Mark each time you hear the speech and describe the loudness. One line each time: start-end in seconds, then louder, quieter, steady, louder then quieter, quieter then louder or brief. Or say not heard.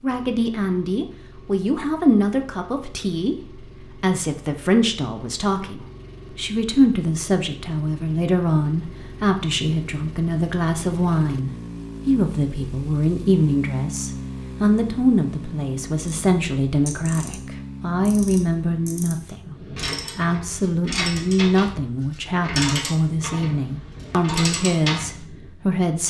0.0-26.0 steady.